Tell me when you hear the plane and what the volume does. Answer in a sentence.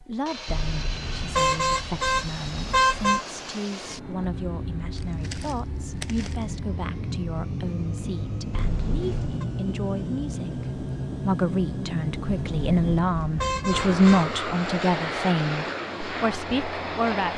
You can hear the plane from 0.0 to 17.3 s, getting louder.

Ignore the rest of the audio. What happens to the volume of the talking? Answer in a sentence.
The loudness of the talking goes up.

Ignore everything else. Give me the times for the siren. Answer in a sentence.
You can't hear the siren here.